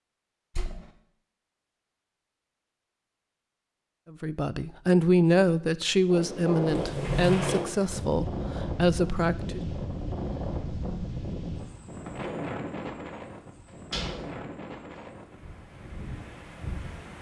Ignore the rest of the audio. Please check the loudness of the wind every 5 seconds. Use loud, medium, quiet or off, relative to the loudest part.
off, loud, loud, medium.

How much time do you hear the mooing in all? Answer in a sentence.
The mooing can't be heard in this clip.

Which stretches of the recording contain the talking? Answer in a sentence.
You can hear the talking from 4.1 to 9.6 s.